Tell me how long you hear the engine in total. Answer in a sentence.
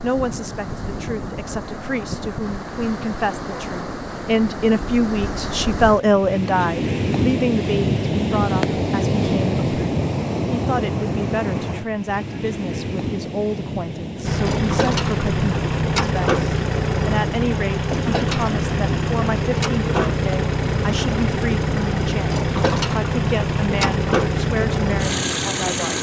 You can hear the engine for 12 seconds altogether.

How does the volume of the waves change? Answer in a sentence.
The loudness of the waves goes up, then down.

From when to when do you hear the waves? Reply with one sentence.
The waves can be heard from 0.0 to 25.9 s.